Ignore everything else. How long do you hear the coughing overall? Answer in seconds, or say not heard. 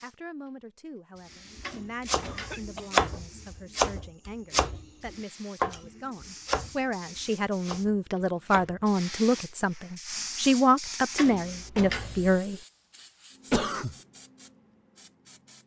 2 s.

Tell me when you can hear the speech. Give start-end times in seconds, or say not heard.
0.0-12.6.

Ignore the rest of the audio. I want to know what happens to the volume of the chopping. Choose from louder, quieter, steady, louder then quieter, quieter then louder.
quieter.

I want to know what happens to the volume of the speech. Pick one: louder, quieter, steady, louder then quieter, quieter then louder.
louder.